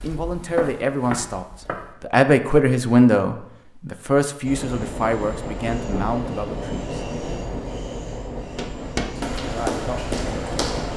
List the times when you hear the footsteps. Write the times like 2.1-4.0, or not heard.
0.0-1.9, 8.6-10.9.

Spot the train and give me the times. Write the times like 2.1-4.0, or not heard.
4.5-10.9.